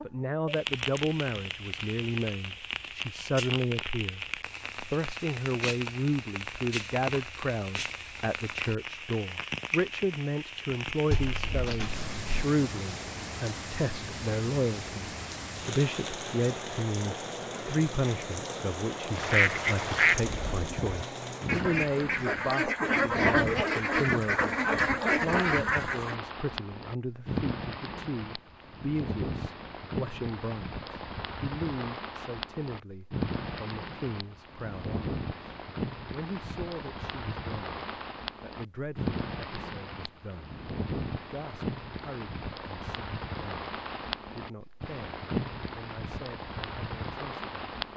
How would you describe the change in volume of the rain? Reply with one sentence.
The volume of the rain stays about the same.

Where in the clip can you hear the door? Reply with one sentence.
The door can be heard from 11.1 to 12.4 s.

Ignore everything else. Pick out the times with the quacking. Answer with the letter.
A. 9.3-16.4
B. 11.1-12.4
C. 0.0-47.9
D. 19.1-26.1
D.